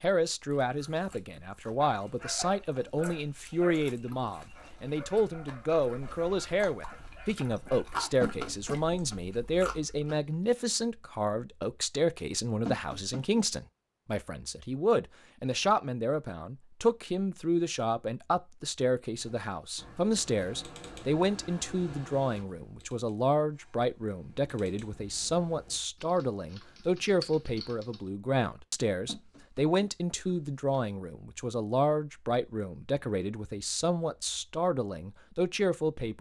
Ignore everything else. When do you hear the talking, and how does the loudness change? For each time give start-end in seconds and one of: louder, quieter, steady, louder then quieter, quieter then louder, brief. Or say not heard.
0.0-36.1 steady.